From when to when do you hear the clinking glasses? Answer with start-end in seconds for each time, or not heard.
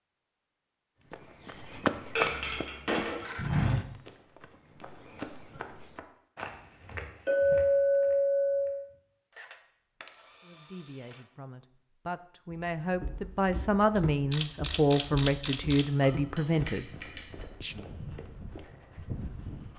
2.1-3.2, 7.2-8.8, 16.0-17.2.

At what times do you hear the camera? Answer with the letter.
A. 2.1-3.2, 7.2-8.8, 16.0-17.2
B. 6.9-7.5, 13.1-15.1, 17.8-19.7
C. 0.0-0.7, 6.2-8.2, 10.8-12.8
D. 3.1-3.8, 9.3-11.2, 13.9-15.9
D.